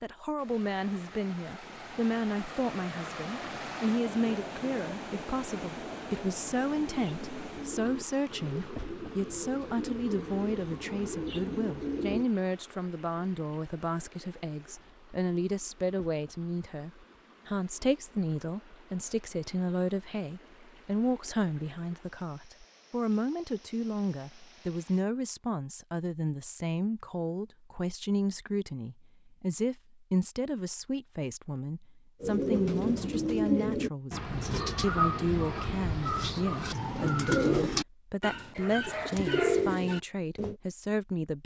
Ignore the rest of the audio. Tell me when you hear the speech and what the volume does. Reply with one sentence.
The speech can be heard from 0.0 to 41.4 s, at a steady volume.